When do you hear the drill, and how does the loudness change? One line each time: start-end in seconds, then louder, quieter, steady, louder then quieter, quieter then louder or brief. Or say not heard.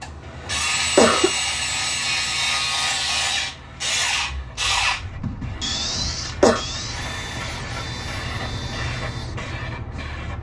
0.0-10.2 quieter.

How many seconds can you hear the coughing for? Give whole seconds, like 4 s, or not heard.
2 s.